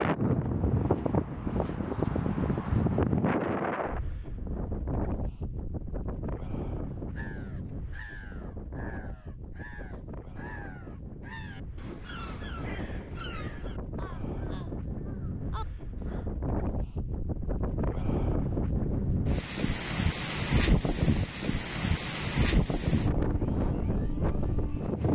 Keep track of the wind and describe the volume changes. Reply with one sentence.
The loudness of the wind goes down, then up.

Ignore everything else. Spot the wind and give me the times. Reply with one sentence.
You can hear the wind from 0.0 to 25.1 s.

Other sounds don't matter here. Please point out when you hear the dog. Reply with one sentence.
The dog can't be heard in this clip.